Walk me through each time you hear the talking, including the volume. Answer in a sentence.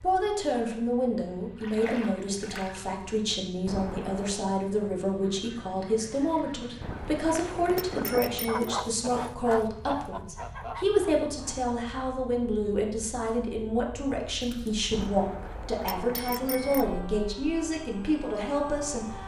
The talking can be heard from 0.0 to 19.1 s, at a steady volume.